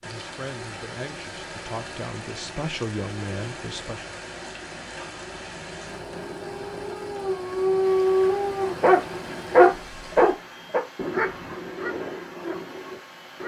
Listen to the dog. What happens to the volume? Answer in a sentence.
The volume of the dog goes up, then down.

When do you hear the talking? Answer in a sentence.
You can hear the talking from 0.1 to 4.1 s.